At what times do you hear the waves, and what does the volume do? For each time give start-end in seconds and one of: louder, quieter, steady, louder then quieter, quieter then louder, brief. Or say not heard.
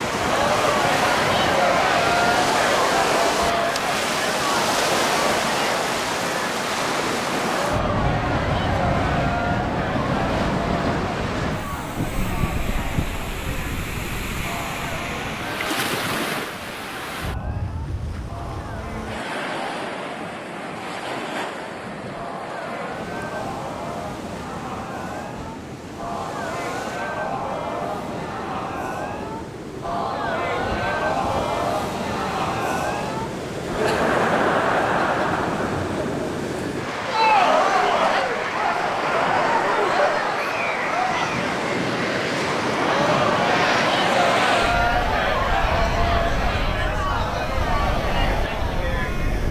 0.0-49.4 quieter then louder.